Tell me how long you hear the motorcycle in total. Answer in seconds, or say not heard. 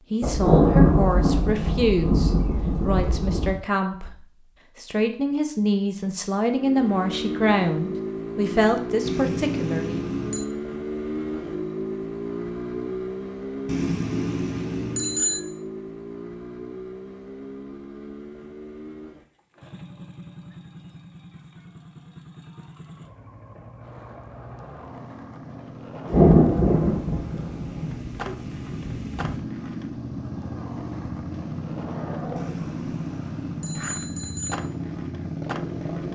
30 s.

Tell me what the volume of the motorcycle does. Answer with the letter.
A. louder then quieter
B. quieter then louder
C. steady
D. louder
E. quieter
B.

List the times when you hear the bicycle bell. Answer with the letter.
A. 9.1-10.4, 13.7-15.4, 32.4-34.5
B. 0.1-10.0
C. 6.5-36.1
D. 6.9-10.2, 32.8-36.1
A.